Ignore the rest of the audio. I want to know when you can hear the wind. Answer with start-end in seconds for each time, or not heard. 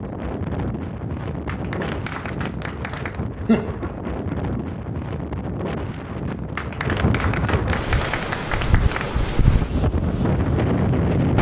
0.0-11.3.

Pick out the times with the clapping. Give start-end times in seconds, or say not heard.
1.1-3.2, 6.2-9.1.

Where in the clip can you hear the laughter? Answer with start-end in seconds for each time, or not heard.
3.5-4.6.